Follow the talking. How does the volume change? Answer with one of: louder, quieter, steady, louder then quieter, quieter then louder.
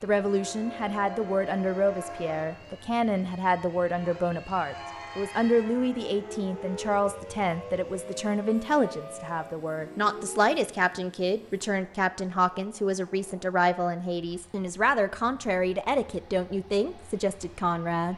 steady.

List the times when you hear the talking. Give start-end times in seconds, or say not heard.
0.0-18.1.